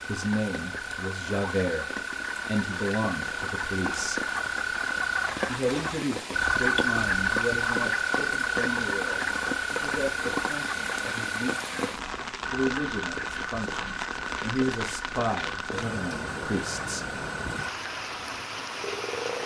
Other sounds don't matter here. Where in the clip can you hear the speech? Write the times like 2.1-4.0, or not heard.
0.1-4.2, 5.5-17.1.